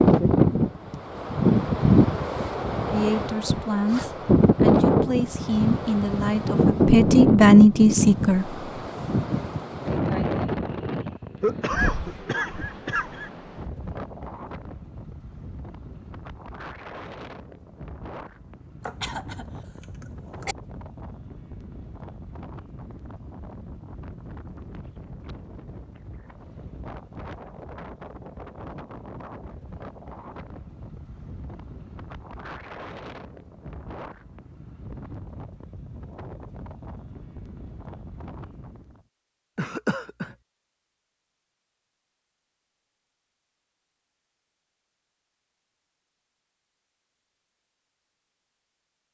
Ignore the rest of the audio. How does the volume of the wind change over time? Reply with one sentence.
The volume of the wind goes down.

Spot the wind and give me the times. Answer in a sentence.
The wind can be heard from 0.0 to 39.0 s.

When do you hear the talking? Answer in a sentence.
You can hear the talking from 2.9 to 8.6 s.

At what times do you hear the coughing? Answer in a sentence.
The coughing can be heard from 11.4 to 13.3 s, from 18.9 to 20.6 s and from 39.5 to 40.3 s.